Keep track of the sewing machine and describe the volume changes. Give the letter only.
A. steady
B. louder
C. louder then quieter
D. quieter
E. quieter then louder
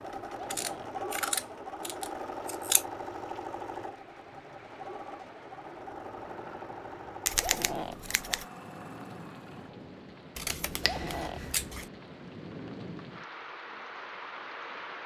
D.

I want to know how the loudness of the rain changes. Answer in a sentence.
The volume of the rain goes up.